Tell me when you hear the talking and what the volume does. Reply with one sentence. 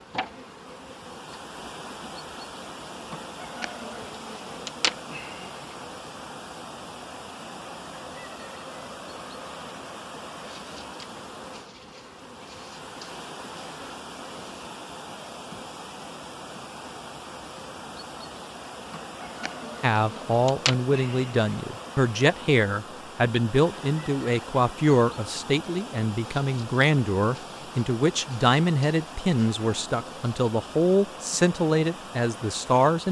You can hear the talking from 19.8 to 33.0 s, at a steady volume.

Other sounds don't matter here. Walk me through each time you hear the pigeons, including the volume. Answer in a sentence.
The pigeons can't be heard in this clip.